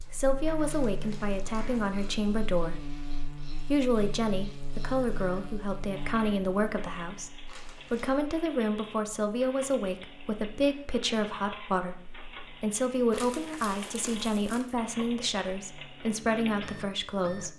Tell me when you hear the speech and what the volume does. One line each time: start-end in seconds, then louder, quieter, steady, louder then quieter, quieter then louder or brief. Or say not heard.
0.0-17.5 steady.